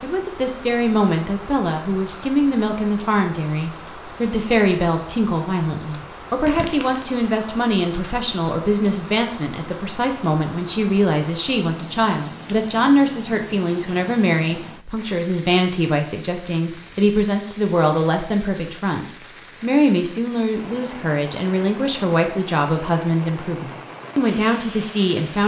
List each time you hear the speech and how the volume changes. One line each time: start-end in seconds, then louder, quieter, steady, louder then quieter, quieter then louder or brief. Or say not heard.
0.0-25.4 steady.